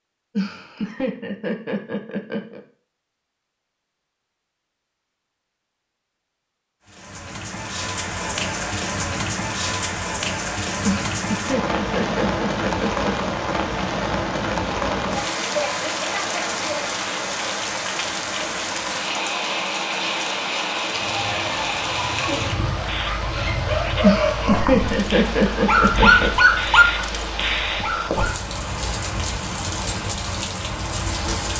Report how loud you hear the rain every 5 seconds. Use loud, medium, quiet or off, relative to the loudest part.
off, loud, loud, loud, loud, loud, loud.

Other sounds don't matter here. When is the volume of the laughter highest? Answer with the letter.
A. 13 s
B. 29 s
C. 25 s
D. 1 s
C.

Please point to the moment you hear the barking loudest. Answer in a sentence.
The volume of the barking peaks at 26 seconds.